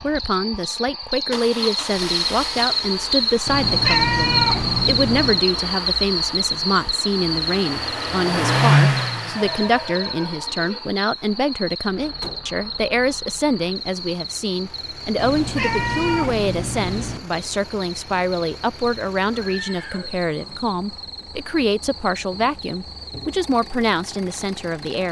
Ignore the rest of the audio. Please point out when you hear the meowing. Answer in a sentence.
You can hear the meowing from 3.5 to 5.5 s and from 15.2 to 17.2 s.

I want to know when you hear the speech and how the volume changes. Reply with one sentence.
The speech can be heard from 0.0 to 25.0 s, at a steady volume.